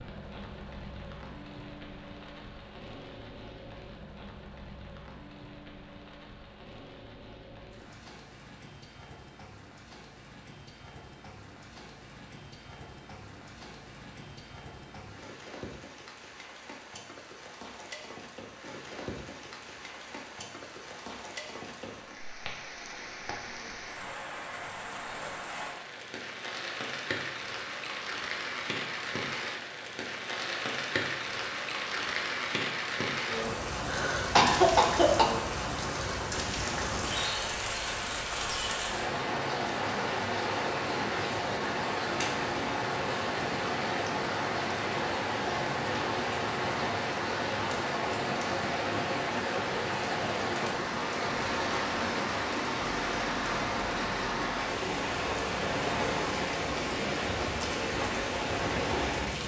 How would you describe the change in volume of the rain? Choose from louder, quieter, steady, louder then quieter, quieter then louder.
louder.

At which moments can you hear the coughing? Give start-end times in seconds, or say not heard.
33.9-35.2.